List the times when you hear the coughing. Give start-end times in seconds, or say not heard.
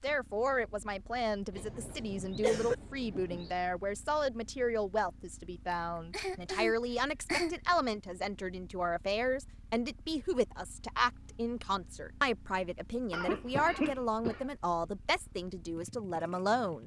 1.6-2.8, 5.7-7.5, 13.1-14.4.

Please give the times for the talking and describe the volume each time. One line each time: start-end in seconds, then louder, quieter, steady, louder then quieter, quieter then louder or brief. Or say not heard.
0.0-16.8 steady.